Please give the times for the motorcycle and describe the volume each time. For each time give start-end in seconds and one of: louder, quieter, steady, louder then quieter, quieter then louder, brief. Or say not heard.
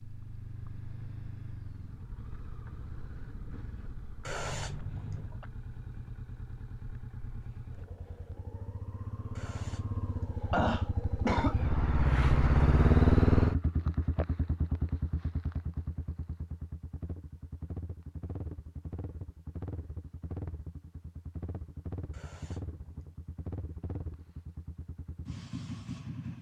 0.0-26.3 louder then quieter.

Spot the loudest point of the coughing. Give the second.
11 s.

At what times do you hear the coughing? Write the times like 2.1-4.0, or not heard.
4.2-5.3, 9.3-11.6, 22.1-23.1.